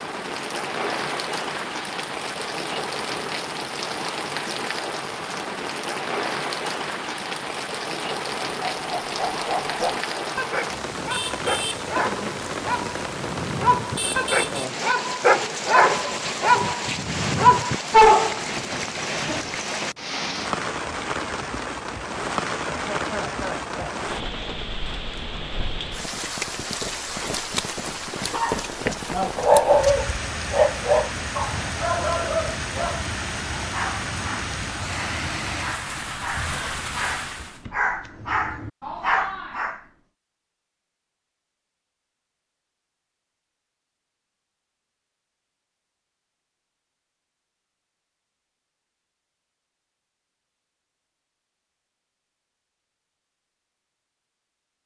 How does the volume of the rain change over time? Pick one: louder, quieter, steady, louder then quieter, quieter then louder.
steady.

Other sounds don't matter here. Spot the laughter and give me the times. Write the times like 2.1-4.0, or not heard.
22.6-24.1.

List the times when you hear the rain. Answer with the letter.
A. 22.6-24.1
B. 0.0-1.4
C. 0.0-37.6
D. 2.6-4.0
C.